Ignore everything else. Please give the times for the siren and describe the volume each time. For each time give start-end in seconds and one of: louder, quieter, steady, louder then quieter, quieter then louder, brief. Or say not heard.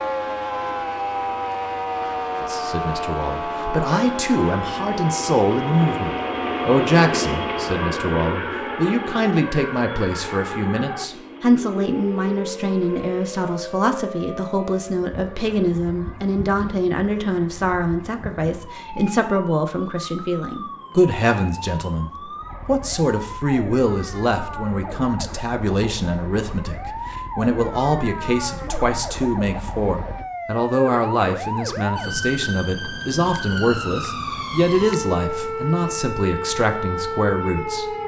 0.0-38.0 quieter then louder.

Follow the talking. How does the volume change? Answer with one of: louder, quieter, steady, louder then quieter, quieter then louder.
steady.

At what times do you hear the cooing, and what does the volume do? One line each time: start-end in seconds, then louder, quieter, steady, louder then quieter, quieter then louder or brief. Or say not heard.
not heard.